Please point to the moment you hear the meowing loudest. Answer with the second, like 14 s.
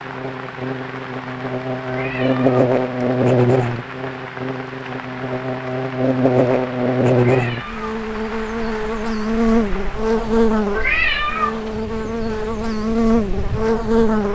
11 s.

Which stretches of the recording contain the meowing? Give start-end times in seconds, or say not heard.
1.9-2.5, 7.2-7.9, 10.7-11.6.